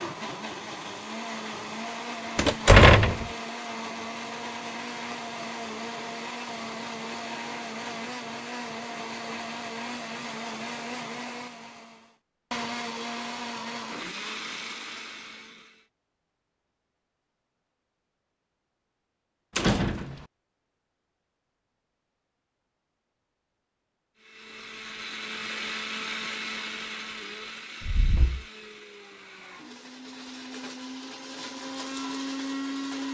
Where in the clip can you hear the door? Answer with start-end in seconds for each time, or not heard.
2.4-3.2, 19.6-20.2, 27.8-28.4.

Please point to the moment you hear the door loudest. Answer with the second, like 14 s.
3 s.